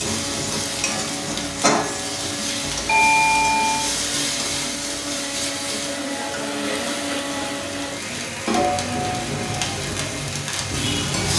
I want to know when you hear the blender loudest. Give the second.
7 s.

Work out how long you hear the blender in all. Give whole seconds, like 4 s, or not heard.
11 s.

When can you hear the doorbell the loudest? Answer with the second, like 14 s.
3 s.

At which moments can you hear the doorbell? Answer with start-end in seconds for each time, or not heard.
2.9-3.9, 8.5-9.4.